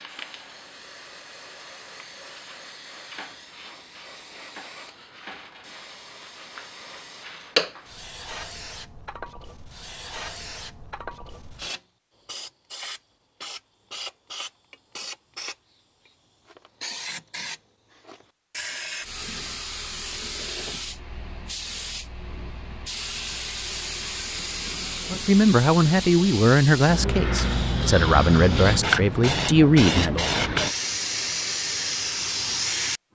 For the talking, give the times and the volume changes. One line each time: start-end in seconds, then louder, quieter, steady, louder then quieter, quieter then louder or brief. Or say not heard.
25.1-30.2 quieter then louder.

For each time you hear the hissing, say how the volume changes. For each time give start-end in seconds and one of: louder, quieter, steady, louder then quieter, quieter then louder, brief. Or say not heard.
0.0-33.0 louder.